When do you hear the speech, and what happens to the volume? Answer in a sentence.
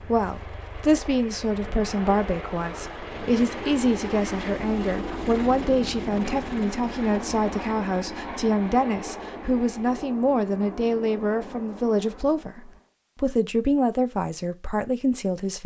The speech can be heard from 0.0 to 15.6 s, at a steady volume.